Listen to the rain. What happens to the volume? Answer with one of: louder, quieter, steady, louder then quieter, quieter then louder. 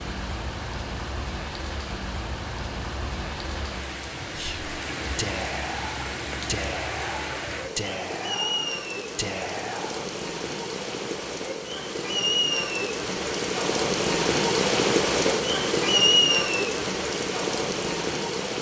louder.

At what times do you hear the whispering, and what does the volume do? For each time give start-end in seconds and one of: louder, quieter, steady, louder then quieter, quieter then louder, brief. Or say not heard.
4.3-10.0 steady.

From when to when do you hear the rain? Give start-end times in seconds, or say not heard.
0.0-18.5.